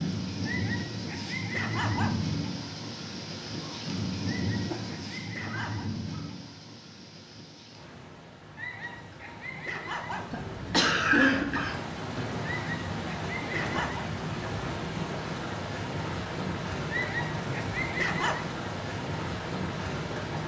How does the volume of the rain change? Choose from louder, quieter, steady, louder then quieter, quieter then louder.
quieter then louder.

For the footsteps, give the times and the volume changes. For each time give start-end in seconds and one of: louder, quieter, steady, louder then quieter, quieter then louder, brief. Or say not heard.
not heard.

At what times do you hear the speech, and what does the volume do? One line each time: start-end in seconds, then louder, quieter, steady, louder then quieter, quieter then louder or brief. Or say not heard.
not heard.